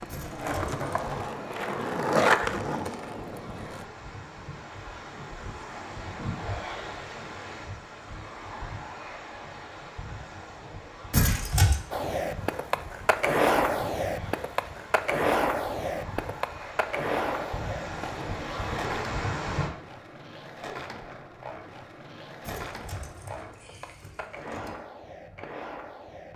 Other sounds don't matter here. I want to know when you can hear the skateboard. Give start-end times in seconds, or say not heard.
0.0-3.9, 11.9-26.3.